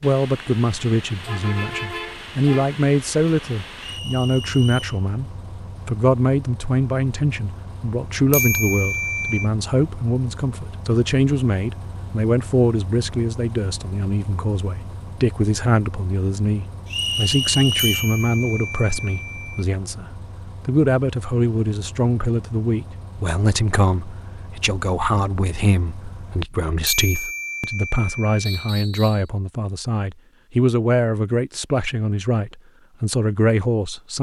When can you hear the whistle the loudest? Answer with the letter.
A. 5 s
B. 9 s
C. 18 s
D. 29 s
C.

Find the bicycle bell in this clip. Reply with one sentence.
The bicycle bell can be heard from 8.3 to 9.5 s, from 17.8 to 19.6 s and from 26.9 to 28.7 s.